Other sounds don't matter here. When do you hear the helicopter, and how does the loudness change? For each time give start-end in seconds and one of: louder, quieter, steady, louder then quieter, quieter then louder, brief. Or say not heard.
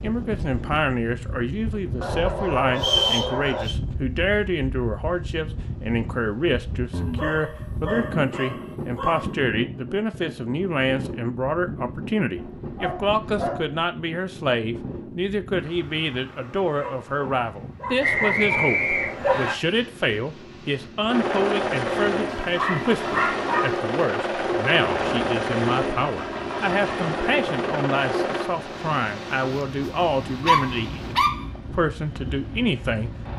21.1-33.3 quieter.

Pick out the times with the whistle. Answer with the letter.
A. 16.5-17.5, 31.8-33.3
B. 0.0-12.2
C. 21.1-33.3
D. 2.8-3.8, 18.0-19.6
D.